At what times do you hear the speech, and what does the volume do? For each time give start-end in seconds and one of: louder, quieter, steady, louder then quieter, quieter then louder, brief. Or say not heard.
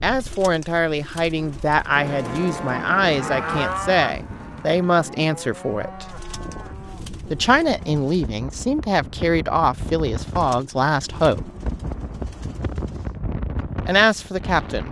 0.0-6.0 steady
7.3-11.5 steady
13.8-14.8 brief.